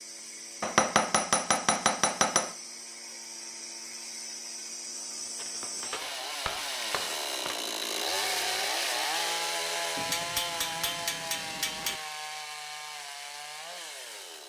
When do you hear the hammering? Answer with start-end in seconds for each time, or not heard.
0.6-2.5, 5.3-7.6, 9.9-12.0.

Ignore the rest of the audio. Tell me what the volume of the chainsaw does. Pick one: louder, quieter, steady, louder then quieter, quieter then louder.
louder then quieter.